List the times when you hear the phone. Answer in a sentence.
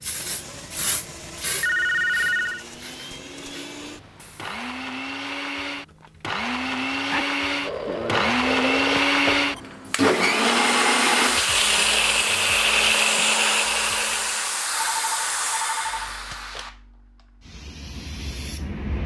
You can hear the phone from 1.6 to 2.6 s, from 7.1 to 9.4 s and from 14.9 to 16.6 s.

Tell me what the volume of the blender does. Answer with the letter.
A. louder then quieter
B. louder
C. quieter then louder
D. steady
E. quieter
B.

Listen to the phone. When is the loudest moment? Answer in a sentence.
The loudest moment of the phone is at 2 seconds.